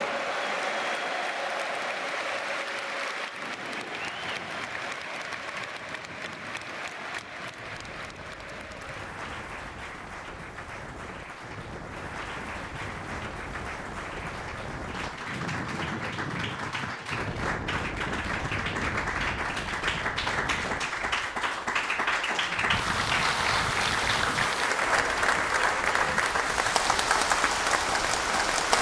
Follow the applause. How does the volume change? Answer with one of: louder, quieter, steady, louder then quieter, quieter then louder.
quieter then louder.